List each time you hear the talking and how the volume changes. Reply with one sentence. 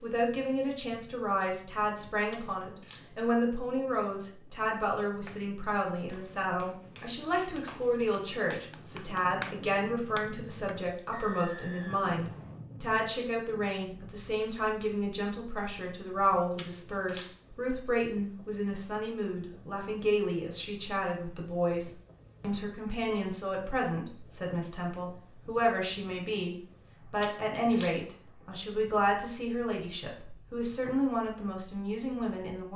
You can hear the talking from 0.0 to 32.7 s, at a steady volume.